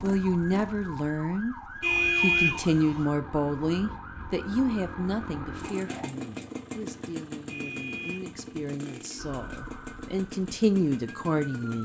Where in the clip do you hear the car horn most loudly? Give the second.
2 s.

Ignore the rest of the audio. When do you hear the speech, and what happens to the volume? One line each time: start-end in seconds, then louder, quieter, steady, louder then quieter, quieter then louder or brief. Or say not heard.
0.0-1.6 brief
2.1-11.8 quieter then louder.